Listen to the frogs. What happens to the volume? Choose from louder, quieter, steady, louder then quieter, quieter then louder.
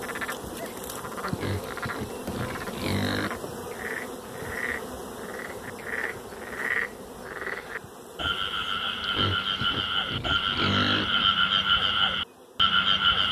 louder.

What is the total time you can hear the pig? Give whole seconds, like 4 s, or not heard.
4 s.